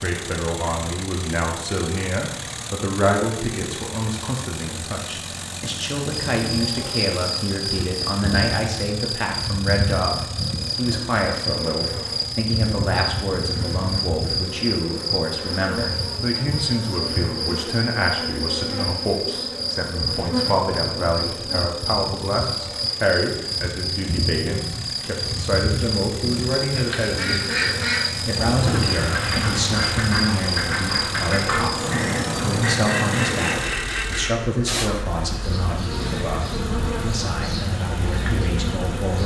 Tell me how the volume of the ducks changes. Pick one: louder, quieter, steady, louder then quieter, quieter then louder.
steady.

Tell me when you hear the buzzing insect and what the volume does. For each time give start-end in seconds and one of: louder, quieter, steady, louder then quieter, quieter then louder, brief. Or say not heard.
6.1-39.2 steady.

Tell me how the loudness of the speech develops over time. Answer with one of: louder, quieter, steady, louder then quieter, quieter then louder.
steady.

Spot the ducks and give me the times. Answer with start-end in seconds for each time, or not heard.
26.6-34.3.